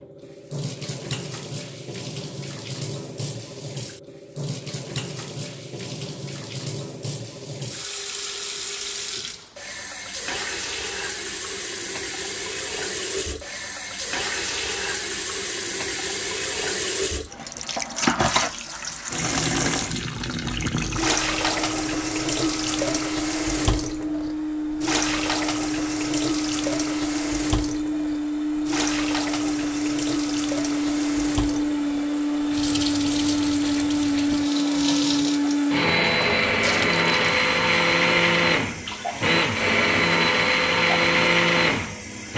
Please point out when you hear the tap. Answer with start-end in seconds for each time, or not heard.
0.0-42.3.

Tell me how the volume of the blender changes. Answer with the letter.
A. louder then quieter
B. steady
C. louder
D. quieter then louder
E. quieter
C.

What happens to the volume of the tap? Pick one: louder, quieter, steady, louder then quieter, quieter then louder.
louder then quieter.